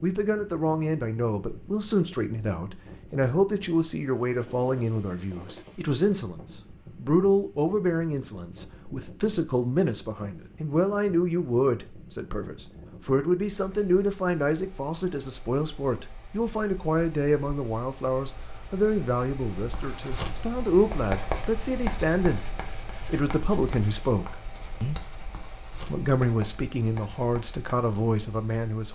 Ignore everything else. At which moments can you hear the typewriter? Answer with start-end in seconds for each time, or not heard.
not heard.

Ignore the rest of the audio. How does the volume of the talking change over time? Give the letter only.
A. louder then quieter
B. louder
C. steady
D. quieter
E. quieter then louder
C.